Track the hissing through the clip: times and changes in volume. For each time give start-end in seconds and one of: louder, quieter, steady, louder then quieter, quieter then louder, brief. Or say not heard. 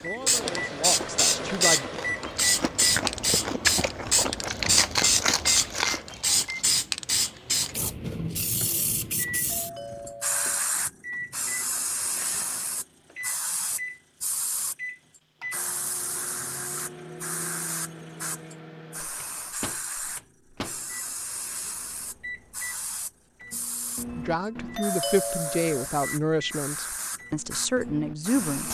0.2-28.6 quieter.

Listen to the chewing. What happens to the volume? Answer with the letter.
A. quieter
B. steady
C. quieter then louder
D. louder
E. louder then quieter
D.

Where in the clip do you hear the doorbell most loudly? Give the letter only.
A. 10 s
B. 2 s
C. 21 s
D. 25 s
D.